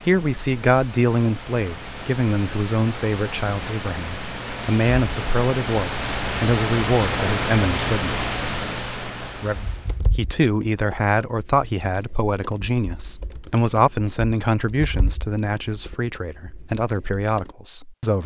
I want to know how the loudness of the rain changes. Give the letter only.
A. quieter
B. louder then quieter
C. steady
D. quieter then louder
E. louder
E.